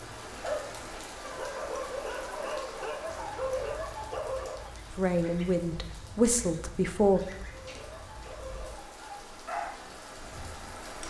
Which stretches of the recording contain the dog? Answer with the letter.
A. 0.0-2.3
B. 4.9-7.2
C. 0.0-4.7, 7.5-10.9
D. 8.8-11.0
C.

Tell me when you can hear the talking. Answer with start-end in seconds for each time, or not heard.
4.9-7.2.